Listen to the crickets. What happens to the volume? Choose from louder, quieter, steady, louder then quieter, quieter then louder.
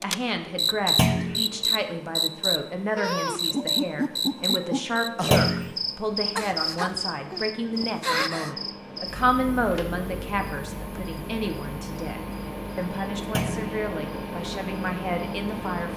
quieter.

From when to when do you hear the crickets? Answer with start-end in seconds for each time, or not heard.
0.0-15.9.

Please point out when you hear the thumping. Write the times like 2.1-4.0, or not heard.
0.9-1.4, 5.3-5.8, 13.3-13.8.